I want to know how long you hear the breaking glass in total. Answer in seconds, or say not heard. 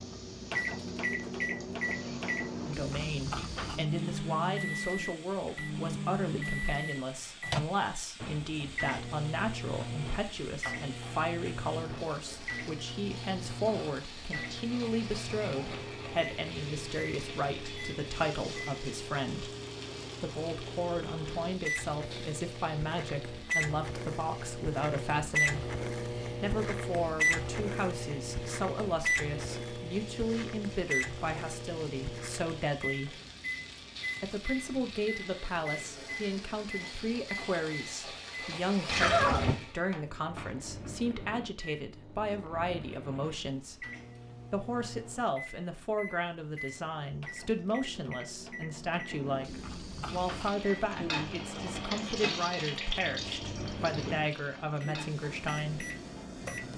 2 s.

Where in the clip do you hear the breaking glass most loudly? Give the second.
39 s.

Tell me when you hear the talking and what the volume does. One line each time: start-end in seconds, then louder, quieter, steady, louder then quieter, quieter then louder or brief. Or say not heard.
2.6-19.5 steady
20.2-25.6 steady
26.4-33.2 steady
34.2-43.8 steady
44.5-55.9 steady.